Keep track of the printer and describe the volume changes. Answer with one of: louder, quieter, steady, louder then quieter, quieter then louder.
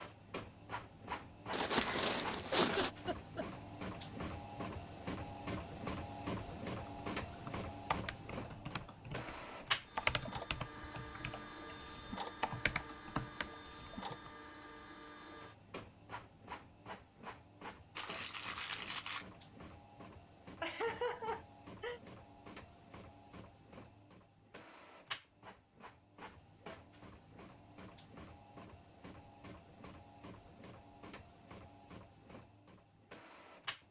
quieter.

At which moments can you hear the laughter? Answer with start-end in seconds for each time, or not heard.
2.5-3.5, 20.6-22.0.